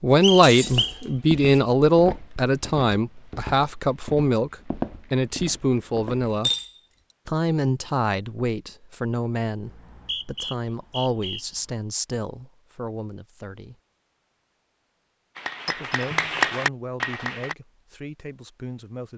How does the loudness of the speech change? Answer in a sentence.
The volume of the speech goes down.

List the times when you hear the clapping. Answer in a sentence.
You can hear the clapping from 15.3 to 17.6 s.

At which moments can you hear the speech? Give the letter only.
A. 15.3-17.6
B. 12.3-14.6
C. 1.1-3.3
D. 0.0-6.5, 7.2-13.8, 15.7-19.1
D.